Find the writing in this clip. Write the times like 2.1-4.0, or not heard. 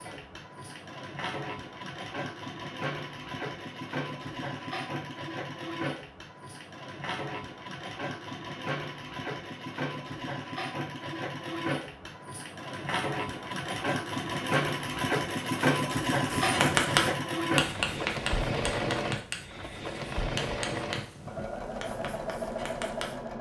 16.2-23.1.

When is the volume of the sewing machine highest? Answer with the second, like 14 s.
16 s.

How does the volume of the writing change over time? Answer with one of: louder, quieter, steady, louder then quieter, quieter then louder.
quieter.